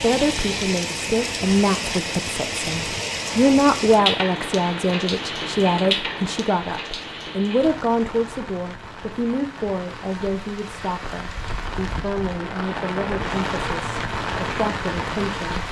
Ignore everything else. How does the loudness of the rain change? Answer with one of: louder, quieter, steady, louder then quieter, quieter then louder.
quieter then louder.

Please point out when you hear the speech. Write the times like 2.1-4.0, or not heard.
0.0-15.6.